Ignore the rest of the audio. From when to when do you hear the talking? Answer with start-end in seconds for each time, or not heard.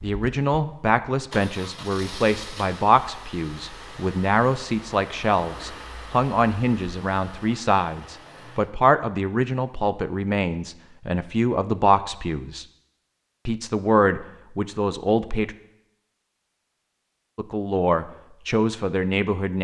0.0-12.7, 13.4-15.6, 17.4-19.5.